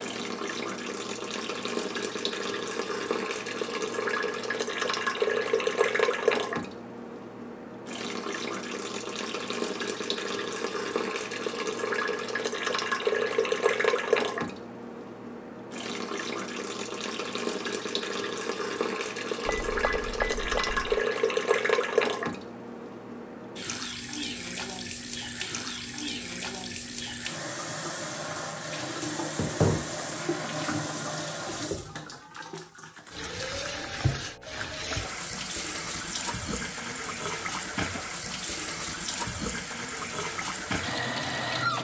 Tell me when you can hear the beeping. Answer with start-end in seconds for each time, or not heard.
19.4-21.0.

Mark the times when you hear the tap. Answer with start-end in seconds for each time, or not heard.
0.0-41.7.